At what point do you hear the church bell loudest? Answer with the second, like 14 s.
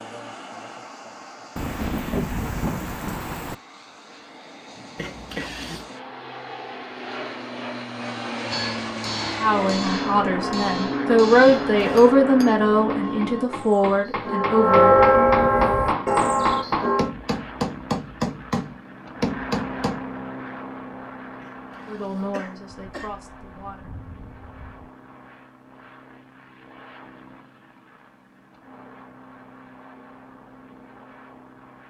15 s.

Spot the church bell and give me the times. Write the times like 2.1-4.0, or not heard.
9.4-17.1.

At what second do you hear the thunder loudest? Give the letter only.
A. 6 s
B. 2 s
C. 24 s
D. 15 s
B.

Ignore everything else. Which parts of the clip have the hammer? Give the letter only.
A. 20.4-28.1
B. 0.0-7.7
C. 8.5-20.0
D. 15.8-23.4
C.